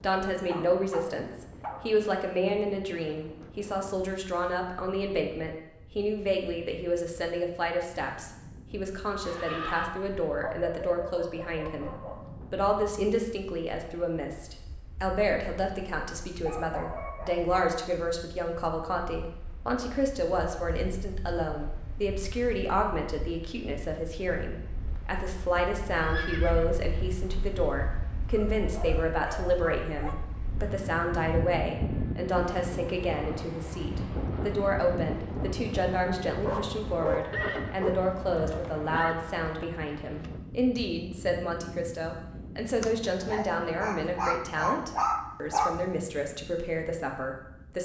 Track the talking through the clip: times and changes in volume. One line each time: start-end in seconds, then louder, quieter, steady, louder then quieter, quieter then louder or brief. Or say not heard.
0.0-47.8 steady.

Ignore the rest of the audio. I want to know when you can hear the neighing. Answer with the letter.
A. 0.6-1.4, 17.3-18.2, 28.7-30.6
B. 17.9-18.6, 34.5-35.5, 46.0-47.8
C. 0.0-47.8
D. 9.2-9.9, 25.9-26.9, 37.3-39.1
D.